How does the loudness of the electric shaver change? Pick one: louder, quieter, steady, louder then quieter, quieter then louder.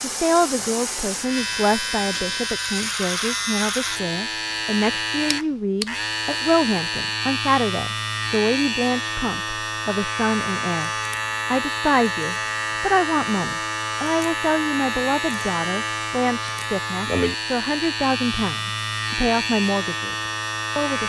steady.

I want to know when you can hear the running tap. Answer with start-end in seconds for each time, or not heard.
0.0-2.5.